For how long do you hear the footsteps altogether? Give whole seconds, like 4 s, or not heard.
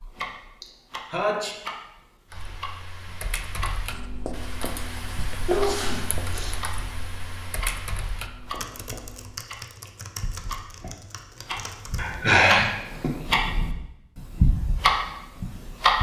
not heard.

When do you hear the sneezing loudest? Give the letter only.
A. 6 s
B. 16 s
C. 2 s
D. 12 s
D.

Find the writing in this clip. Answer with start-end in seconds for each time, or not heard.
3.9-9.3.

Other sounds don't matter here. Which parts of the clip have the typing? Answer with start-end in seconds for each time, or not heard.
2.3-12.2.